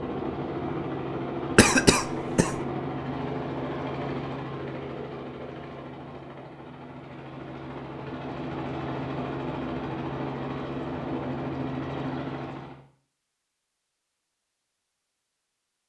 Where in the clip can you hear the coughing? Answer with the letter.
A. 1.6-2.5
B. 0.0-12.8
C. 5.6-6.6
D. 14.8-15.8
A.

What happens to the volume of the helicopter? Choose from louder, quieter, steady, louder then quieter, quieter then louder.
quieter then louder.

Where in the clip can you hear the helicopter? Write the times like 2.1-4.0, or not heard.
0.0-12.8.